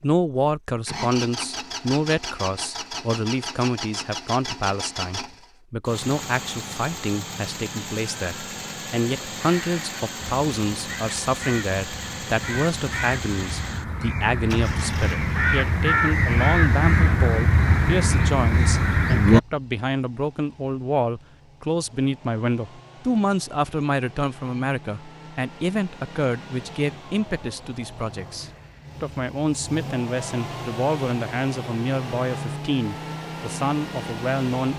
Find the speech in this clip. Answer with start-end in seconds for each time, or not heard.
0.0-34.7.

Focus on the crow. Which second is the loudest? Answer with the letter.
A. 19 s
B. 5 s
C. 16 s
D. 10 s
A.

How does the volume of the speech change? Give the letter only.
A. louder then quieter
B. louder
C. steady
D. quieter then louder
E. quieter
C.